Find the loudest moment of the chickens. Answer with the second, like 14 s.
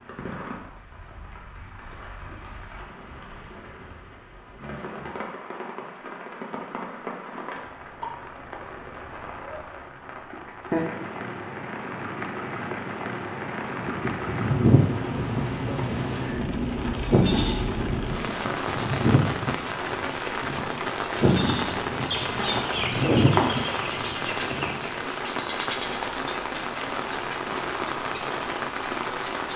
23 s.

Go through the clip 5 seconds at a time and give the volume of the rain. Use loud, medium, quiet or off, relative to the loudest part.
quiet, medium, loud, loud, loud, loud.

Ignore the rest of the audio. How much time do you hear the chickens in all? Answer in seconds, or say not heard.
3 s.